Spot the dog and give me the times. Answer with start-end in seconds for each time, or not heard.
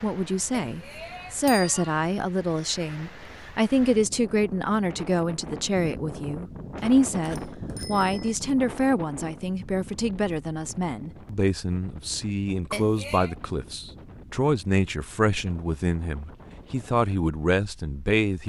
not heard.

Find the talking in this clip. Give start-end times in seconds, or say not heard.
0.0-18.4.